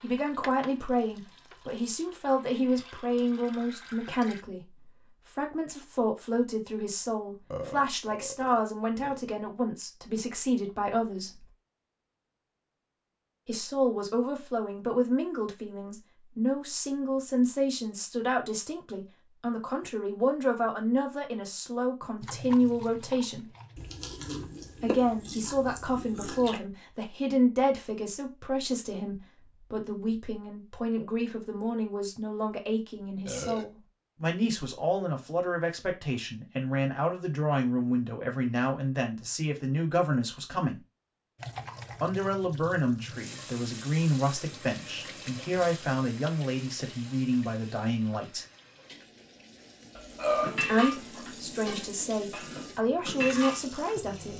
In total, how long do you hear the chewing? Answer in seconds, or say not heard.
3 s.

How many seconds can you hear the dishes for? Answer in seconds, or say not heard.
4 s.